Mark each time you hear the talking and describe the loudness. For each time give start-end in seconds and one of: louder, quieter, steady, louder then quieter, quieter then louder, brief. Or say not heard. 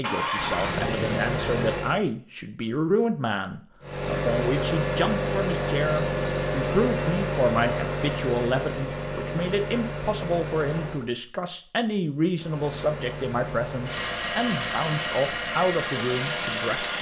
0.0-16.9 steady.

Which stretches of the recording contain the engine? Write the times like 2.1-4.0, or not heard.
0.0-2.0, 3.8-11.1, 12.3-16.9.